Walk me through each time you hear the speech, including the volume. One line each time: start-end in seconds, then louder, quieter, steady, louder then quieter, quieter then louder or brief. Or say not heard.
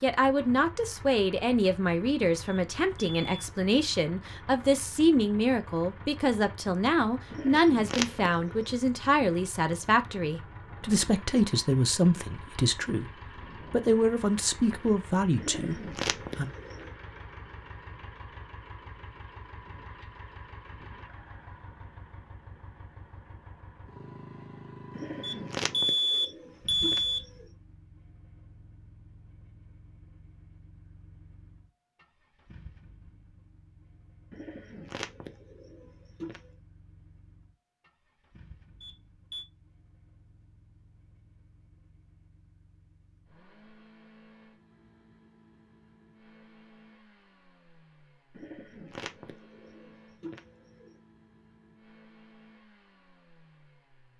0.0-16.5 steady.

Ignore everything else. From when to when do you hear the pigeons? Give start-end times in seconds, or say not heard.
7.3-8.7, 15.3-16.9, 24.9-27.4, 34.3-36.5, 48.3-51.0.